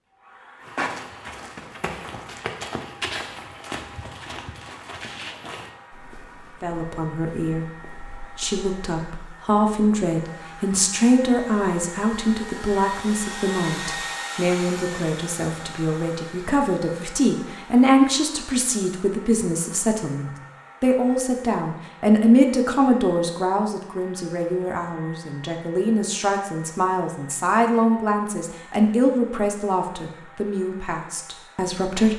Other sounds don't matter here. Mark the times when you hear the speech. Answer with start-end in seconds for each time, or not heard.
6.6-7.7, 8.3-32.1.